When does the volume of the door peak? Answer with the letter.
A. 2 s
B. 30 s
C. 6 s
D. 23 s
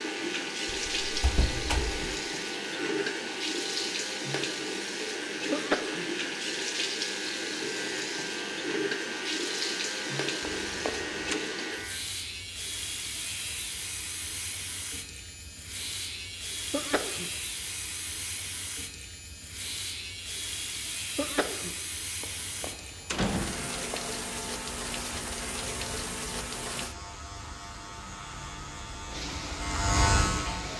D.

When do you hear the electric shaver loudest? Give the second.
30 s.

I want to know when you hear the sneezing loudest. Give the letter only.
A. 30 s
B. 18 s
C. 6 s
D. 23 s
C.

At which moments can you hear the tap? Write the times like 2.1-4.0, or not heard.
0.0-26.9, 29.1-30.7.